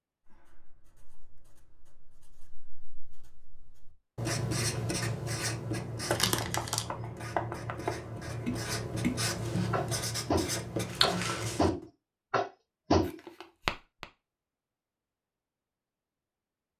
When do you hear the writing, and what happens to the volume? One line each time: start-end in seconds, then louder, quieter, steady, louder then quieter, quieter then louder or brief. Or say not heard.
0.2-11.8 louder.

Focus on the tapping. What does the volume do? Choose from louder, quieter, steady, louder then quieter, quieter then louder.
louder.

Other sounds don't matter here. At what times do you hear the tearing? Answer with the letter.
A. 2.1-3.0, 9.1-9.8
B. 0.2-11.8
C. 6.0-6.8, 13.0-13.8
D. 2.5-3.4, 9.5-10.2
C.